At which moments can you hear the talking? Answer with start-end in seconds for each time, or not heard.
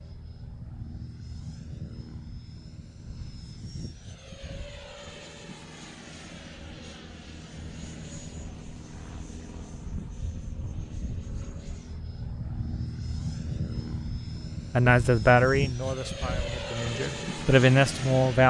14.7-18.4.